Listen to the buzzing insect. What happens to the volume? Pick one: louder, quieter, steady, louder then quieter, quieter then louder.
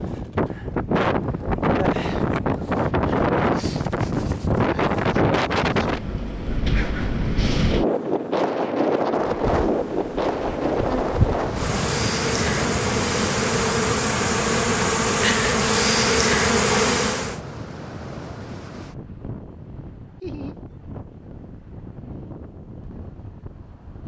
louder.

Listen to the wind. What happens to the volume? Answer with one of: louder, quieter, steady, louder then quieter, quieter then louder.
quieter.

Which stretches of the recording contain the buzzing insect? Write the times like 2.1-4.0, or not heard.
9.3-17.4.